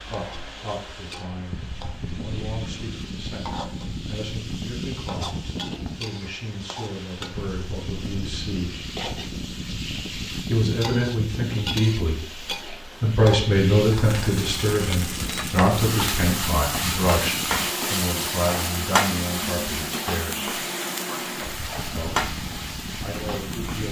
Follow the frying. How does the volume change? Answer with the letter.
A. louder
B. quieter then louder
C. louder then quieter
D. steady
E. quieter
A.